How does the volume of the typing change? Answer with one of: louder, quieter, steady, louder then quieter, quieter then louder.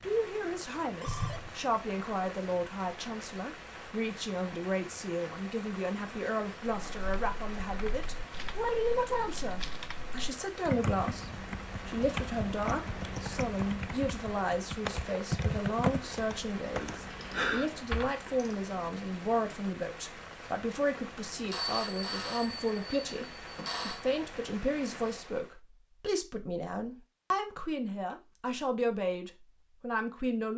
louder.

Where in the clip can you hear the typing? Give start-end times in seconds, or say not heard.
6.7-18.1.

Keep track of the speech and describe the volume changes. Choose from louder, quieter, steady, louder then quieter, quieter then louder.
steady.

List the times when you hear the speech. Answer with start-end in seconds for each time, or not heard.
0.0-23.2, 23.9-30.5.